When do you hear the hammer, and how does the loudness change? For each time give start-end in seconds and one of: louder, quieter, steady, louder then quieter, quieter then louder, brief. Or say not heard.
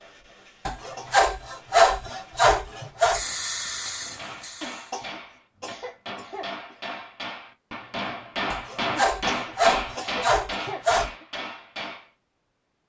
4.0-12.1 louder then quieter.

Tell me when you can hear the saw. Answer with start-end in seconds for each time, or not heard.
0.7-3.2, 8.5-11.1.